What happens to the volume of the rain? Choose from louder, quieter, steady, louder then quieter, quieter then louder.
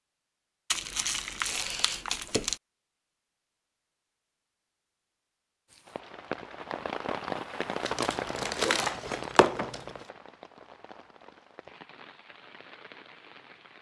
quieter.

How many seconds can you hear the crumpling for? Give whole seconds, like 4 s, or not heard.
4 s.